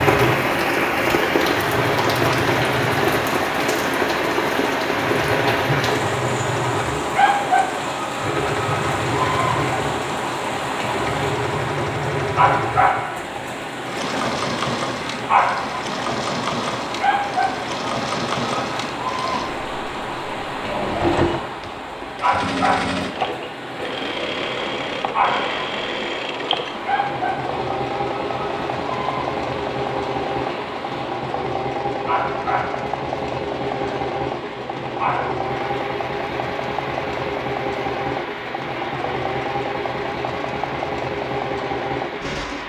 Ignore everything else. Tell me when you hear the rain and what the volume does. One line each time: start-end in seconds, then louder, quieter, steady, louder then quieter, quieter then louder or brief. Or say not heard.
0.0-42.6 quieter.